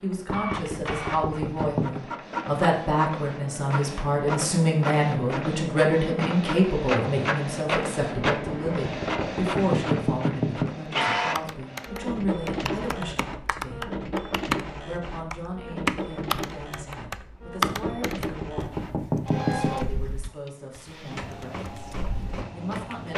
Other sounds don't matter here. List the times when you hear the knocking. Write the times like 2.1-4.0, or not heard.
0.2-2.0, 8.2-10.8, 17.6-19.9.